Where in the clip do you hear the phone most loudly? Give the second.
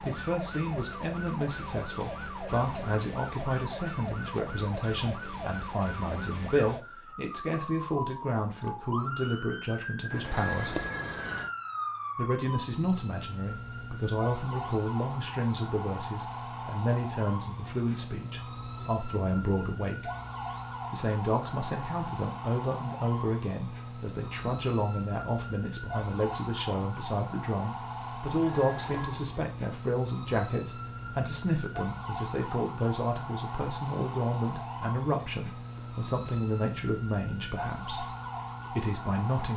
11 s.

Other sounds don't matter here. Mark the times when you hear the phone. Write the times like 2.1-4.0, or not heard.
10.1-11.5, 28.4-29.1.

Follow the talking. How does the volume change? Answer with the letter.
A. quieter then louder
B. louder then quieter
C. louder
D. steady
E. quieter
D.